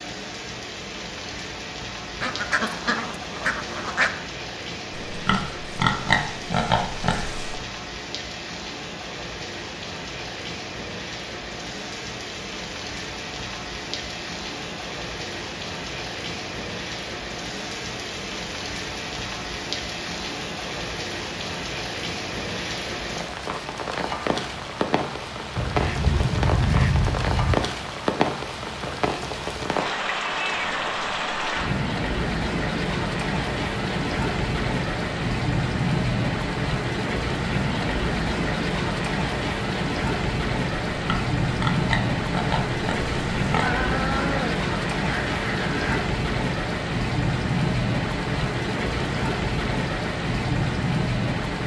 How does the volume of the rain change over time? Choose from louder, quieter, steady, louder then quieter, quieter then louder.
louder.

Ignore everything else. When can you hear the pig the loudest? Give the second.
6 s.